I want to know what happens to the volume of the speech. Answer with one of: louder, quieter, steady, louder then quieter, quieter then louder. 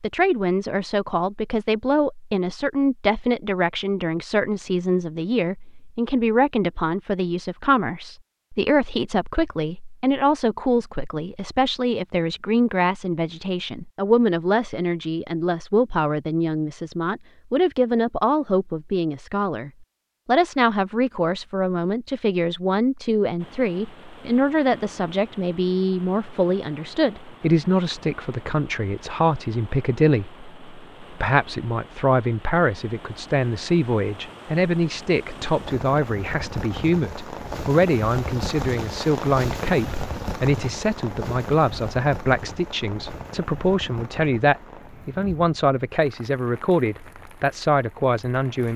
steady.